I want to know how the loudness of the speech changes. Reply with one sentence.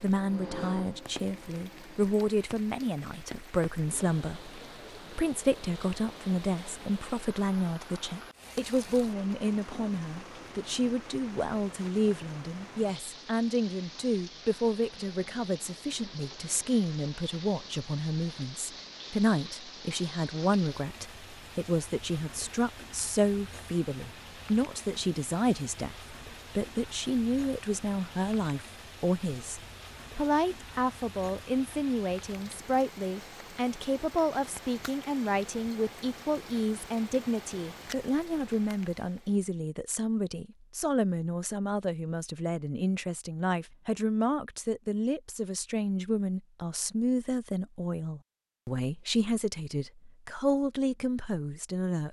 The volume of the speech stays about the same.